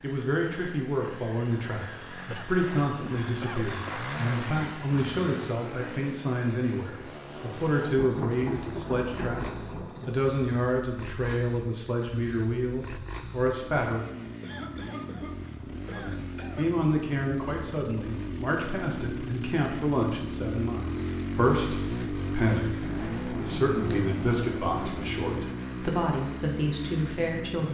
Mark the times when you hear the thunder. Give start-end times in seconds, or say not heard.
6.9-10.2, 22.8-25.4.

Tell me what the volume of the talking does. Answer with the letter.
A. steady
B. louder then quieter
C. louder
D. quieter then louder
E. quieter
A.